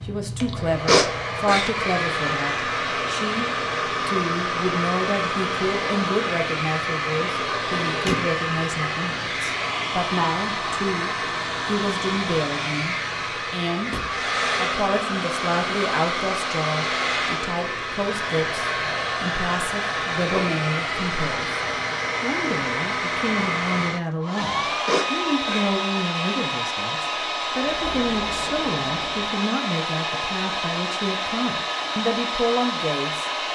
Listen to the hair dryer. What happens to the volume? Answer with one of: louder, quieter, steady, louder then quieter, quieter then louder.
steady.